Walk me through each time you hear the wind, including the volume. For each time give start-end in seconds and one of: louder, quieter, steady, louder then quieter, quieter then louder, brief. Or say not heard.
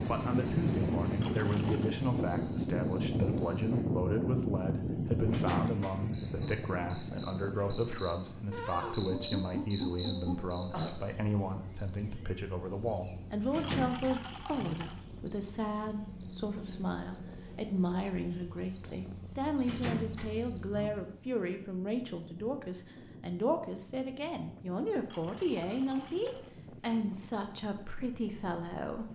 0.0-29.0 quieter.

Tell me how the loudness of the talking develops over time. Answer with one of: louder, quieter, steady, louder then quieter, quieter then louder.
steady.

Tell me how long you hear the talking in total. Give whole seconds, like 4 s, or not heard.
29 s.